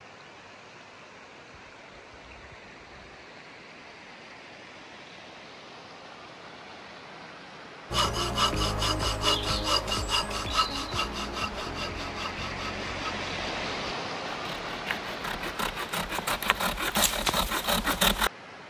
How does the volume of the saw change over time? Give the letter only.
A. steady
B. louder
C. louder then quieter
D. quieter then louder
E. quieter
D.